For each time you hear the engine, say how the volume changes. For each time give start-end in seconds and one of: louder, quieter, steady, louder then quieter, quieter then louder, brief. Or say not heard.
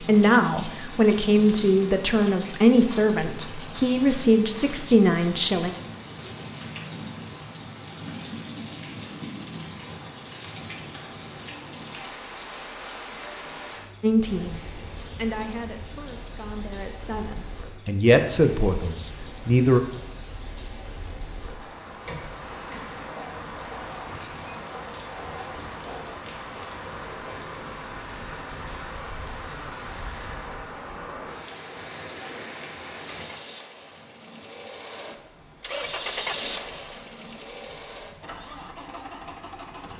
33.0-39.9 louder then quieter.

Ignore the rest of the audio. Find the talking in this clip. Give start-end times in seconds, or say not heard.
0.1-5.7, 14.0-19.8.